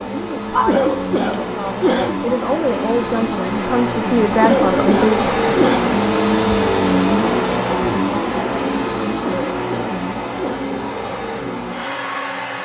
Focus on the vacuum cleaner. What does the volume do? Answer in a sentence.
The volume of the vacuum cleaner goes up, then down.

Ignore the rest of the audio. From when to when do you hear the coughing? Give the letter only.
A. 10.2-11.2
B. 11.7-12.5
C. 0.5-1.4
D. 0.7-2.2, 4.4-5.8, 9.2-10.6
D.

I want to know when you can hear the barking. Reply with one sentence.
You can hear the barking from 0.5 to 1.4 s.